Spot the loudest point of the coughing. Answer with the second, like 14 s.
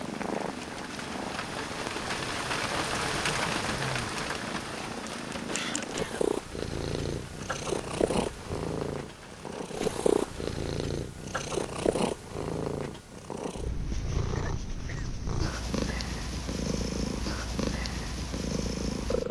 6 s.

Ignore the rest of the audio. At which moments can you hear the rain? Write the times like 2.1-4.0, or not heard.
0.0-10.6.